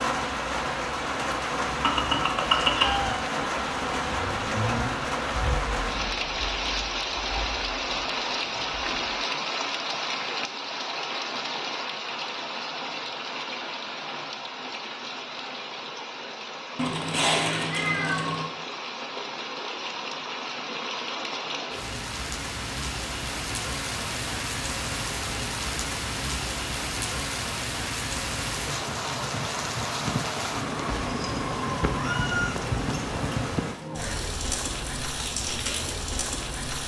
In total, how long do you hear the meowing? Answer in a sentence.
You can hear the meowing for 5 seconds altogether.